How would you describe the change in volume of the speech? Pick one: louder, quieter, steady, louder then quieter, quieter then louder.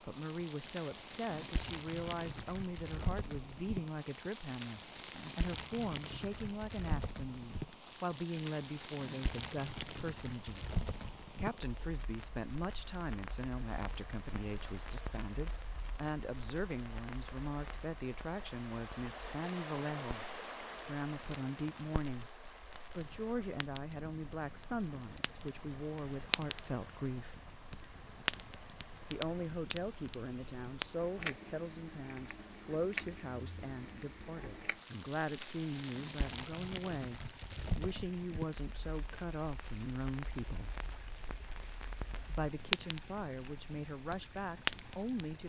steady.